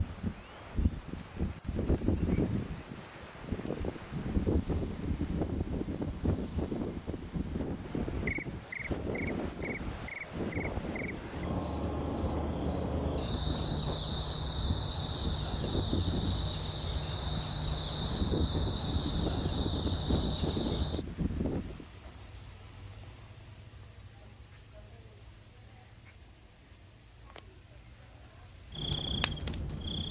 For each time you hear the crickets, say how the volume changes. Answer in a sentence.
You can hear the crickets from 0.0 to 30.0 s, at a steady volume.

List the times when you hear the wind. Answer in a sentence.
The wind can be heard from 0.0 to 21.9 s.